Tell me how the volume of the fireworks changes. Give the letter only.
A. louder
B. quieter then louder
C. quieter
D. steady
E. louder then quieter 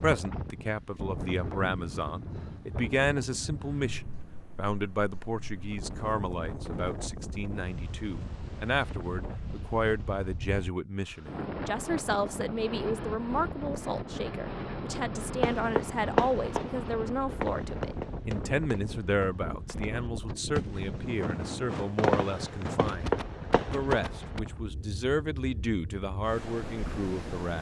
B.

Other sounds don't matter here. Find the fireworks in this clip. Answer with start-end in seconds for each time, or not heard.
15.4-24.4.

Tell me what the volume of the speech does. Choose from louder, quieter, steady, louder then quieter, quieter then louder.
steady.